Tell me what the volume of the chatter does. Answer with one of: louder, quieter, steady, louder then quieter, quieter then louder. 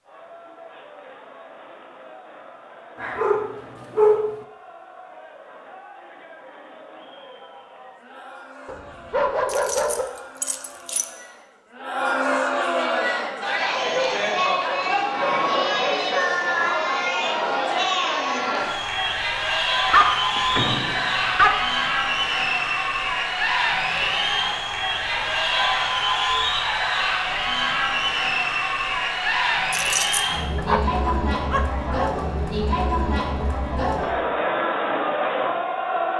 louder.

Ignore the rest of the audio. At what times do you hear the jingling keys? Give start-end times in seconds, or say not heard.
9.4-11.1, 29.7-30.4.